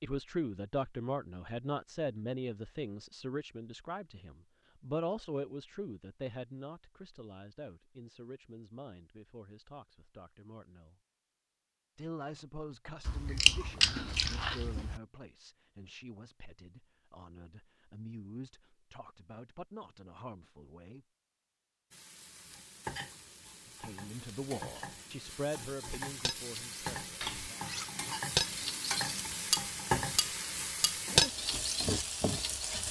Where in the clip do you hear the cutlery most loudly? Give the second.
31 s.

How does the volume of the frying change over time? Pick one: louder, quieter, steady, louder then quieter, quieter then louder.
louder.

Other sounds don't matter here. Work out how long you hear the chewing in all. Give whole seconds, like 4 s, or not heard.
2 s.